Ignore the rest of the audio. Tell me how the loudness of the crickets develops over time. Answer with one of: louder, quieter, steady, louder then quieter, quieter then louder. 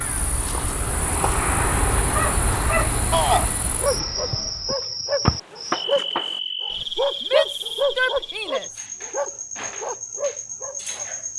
louder then quieter.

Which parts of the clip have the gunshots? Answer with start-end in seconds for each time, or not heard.
5.2-6.4.